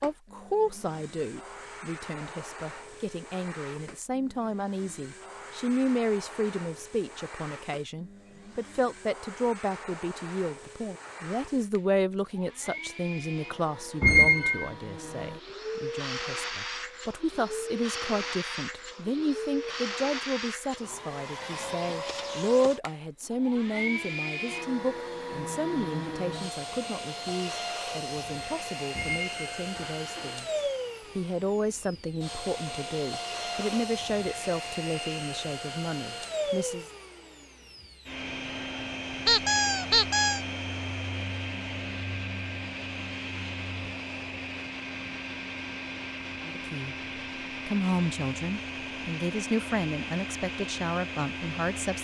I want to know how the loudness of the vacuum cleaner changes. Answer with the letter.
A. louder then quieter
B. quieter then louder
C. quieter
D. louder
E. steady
D.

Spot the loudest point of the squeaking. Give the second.
14 s.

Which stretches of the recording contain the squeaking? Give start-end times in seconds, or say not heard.
14.0-14.7, 28.9-30.4, 39.2-40.4.